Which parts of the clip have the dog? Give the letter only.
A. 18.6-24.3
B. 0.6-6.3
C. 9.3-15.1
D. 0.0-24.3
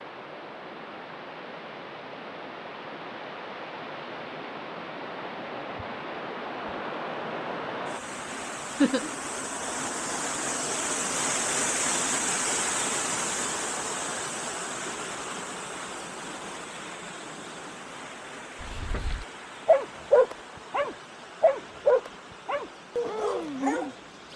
A.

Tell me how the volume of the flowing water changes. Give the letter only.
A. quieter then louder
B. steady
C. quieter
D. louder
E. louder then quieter
E.